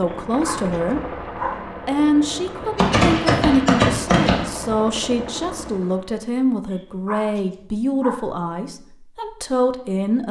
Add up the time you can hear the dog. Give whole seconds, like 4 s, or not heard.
3 s.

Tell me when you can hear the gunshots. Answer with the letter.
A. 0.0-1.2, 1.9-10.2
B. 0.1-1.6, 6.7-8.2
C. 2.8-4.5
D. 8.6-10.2
C.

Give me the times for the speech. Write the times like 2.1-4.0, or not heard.
0.0-1.2, 1.9-10.2.